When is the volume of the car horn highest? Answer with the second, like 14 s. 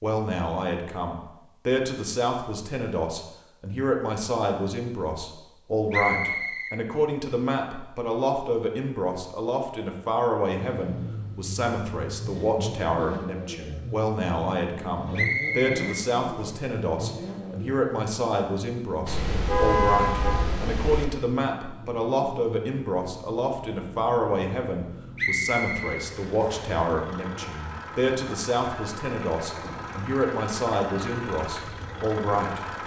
20 s.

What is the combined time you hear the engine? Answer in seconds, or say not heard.
22 s.